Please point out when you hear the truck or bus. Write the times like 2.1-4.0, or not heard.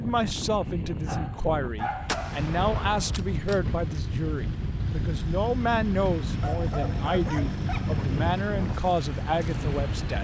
3.4-10.1.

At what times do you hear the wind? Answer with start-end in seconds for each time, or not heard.
0.0-10.1.